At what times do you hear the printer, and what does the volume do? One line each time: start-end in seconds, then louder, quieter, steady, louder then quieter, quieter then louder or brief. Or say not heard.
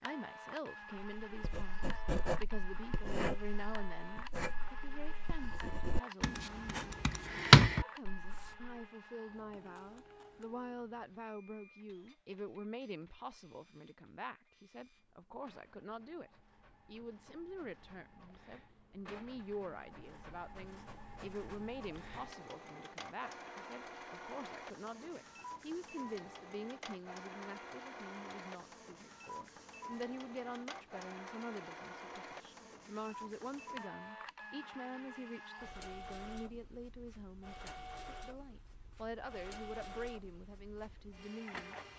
0.0-41.9 quieter then louder.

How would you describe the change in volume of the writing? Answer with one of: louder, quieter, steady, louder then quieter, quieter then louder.
quieter then louder.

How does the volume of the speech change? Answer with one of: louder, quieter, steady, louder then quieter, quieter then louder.
steady.